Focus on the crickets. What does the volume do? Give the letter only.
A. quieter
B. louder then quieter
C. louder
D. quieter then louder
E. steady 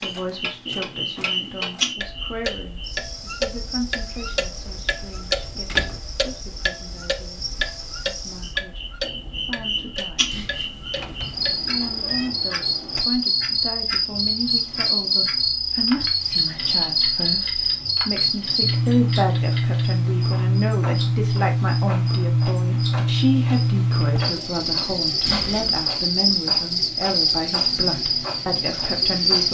C.